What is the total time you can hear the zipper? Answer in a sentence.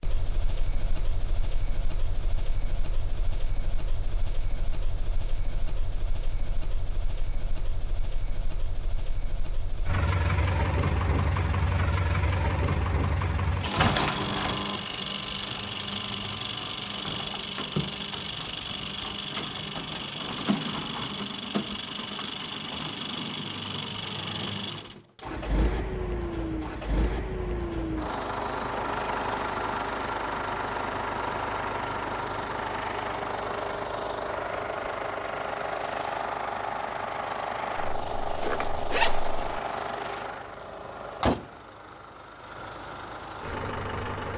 You can hear the zipper for 2 seconds altogether.